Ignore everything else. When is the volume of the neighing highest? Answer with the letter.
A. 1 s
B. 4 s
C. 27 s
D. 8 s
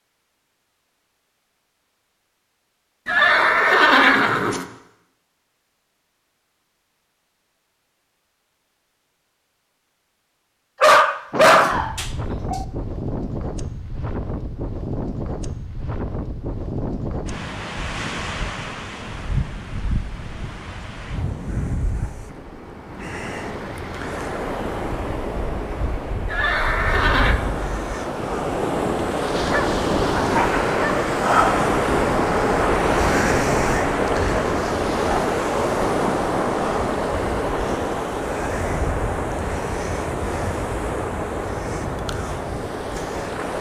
B.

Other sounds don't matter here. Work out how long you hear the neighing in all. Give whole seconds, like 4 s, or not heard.
3 s.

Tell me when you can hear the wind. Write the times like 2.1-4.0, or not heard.
11.3-43.5.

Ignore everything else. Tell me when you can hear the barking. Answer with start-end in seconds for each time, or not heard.
10.8-12.7, 29.5-31.1.